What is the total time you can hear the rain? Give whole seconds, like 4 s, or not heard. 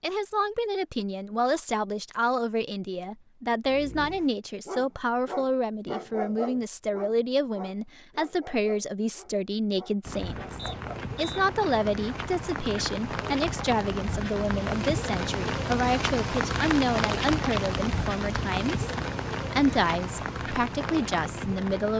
12 s.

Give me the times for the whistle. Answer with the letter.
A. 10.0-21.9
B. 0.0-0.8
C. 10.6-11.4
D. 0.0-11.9
C.